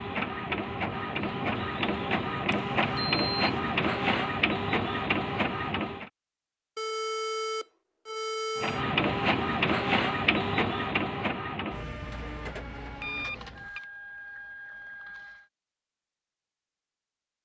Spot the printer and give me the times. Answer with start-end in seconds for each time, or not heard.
0.0-6.1, 8.6-15.5.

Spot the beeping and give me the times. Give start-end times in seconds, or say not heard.
2.5-3.6, 6.8-8.8, 13.0-13.8.